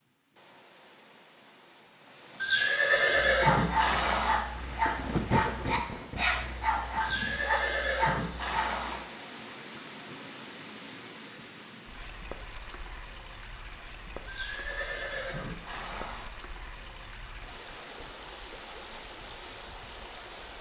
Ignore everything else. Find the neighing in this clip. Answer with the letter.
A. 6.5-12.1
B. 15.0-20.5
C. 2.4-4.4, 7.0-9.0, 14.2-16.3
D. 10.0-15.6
C.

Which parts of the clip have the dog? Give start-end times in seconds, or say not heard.
3.3-8.8.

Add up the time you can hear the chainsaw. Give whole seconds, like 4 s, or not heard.
not heard.